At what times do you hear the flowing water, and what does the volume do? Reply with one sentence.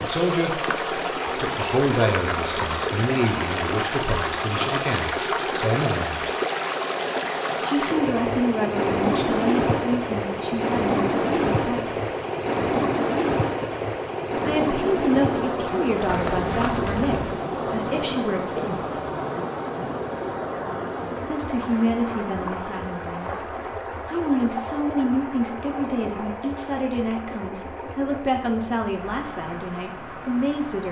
The flowing water can be heard from 0.0 to 30.8 s, getting quieter.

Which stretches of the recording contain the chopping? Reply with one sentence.
You can't hear the chopping here.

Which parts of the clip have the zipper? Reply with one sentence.
The zipper can be heard from 16.1 to 17.4 s.